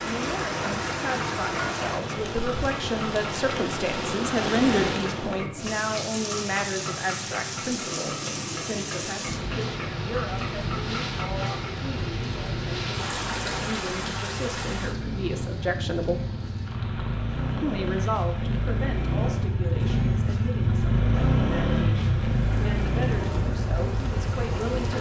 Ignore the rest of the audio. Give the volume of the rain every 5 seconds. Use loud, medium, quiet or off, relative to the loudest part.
loud, loud, loud, medium, medium.